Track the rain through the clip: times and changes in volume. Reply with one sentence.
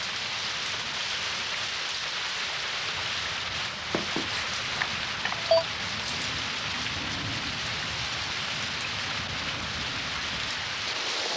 You can hear the rain from 0.0 to 11.3 s, at a steady volume.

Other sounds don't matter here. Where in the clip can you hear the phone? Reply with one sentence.
You can hear the phone from 3.9 to 5.7 s.